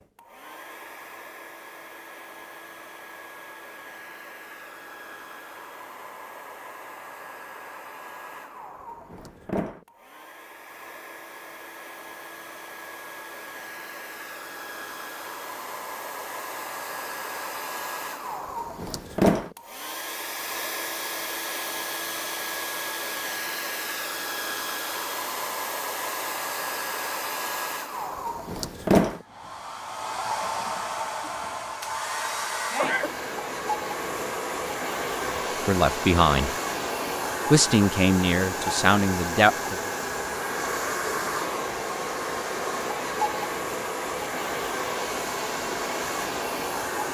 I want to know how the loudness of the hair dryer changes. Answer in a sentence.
The loudness of the hair dryer goes up.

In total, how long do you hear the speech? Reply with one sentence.
The speech can be heard for 4 seconds in total.